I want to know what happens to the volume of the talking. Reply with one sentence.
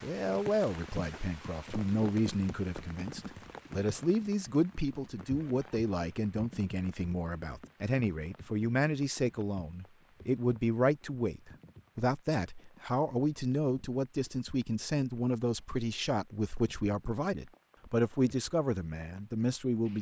The loudness of the talking stays about the same.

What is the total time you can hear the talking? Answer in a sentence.
You can hear the talking for 20 seconds altogether.